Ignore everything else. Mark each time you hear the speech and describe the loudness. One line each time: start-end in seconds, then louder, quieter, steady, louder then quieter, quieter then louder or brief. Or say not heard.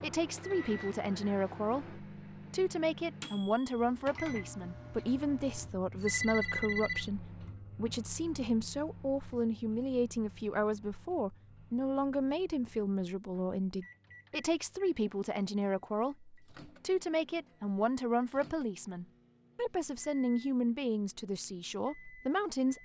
0.0-22.7 steady.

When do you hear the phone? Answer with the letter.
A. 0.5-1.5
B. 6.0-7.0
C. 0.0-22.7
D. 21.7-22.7
B.